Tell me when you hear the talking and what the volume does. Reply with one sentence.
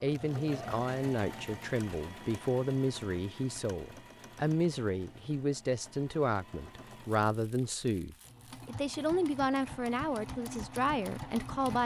The talking can be heard from 0.0 to 11.8 s, at a steady volume.